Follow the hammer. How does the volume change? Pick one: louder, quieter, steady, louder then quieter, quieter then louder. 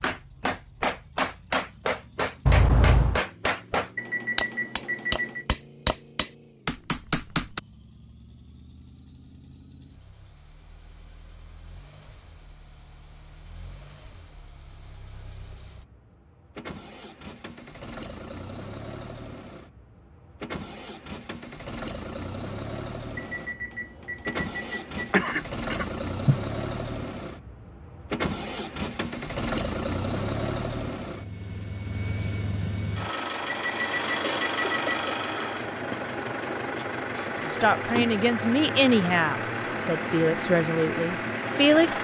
steady.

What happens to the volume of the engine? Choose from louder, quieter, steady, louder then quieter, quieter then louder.
louder.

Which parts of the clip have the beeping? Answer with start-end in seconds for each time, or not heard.
4.0-5.5, 23.1-25.1, 33.5-35.0.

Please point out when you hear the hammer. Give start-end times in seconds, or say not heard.
0.0-7.6.